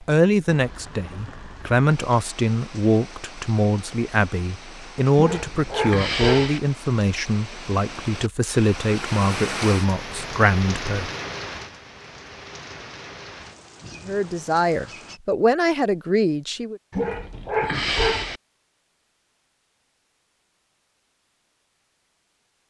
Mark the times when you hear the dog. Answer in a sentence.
You can hear the dog from 5.2 to 6.6 s and from 16.9 to 18.4 s.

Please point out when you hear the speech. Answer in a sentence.
You can hear the speech from 0.0 to 11.1 s and from 14.1 to 16.8 s.